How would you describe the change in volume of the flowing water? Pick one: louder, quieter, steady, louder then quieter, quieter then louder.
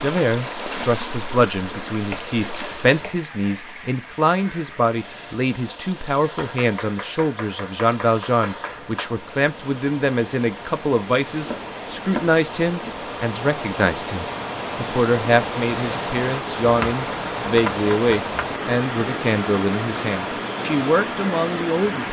quieter then louder.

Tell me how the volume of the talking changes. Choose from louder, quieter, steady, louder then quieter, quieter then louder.
steady.